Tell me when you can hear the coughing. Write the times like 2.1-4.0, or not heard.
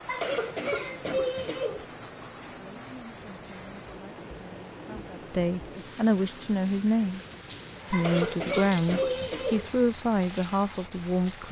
0.1-1.9, 7.9-9.7.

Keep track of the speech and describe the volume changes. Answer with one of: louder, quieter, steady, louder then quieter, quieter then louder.
louder.